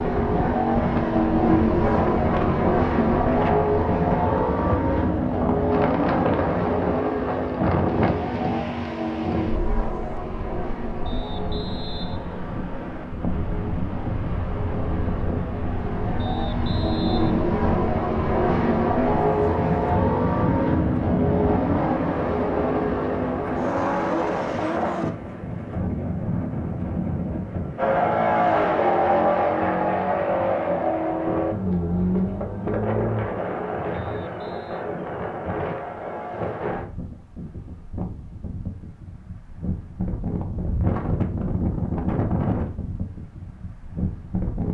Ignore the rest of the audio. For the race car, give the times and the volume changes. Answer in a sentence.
You can hear the race car from 0.0 to 25.1 s, getting quieter then louder; and from 27.8 to 36.9 s, getting quieter.